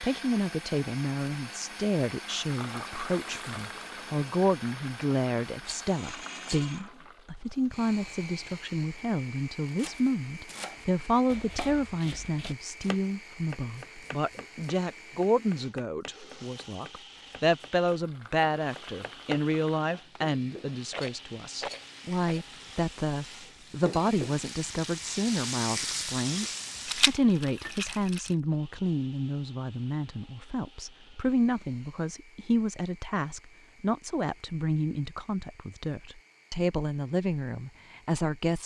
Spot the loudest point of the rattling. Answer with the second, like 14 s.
27 s.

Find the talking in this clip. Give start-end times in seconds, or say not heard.
0.0-26.4, 27.1-38.6.